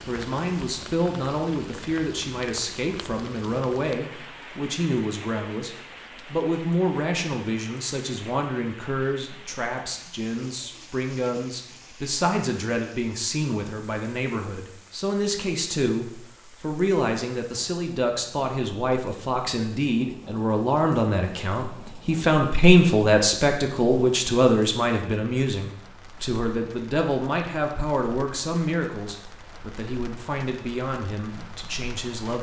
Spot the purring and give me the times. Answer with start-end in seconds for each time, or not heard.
not heard.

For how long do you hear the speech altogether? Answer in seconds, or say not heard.
32 s.